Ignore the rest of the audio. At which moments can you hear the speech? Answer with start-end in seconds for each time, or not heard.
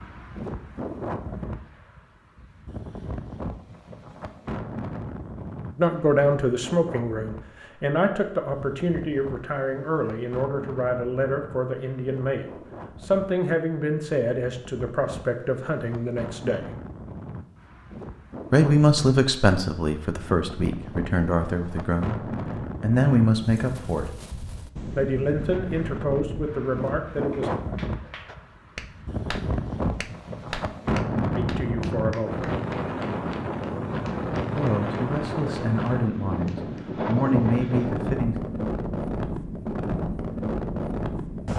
5.8-16.6, 18.5-24.1, 24.9-27.6, 31.4-32.5, 34.5-38.4.